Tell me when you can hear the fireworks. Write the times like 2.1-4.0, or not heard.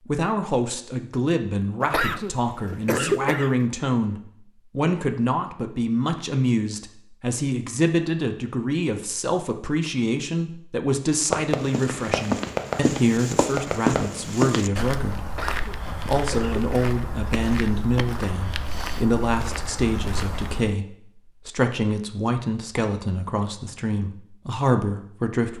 11.1-14.2.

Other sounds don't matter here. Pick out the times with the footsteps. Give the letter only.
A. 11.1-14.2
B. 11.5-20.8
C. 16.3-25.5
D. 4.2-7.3
B.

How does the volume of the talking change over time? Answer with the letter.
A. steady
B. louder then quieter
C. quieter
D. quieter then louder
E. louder
A.